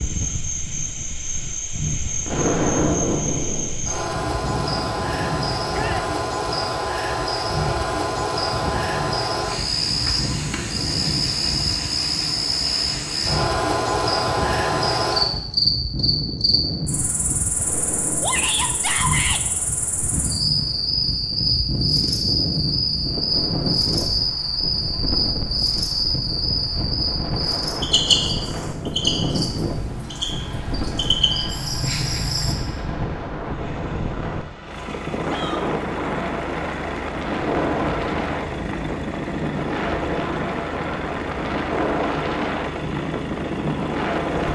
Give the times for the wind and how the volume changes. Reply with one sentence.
The wind can be heard from 0.0 to 44.5 s, getting louder.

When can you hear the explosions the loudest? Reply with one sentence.
The volume of the explosions peaks at 3 seconds.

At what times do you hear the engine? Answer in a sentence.
The engine can be heard from 30.1 to 44.5 s.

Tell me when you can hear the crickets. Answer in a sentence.
You can hear the crickets from 0.0 to 32.5 s.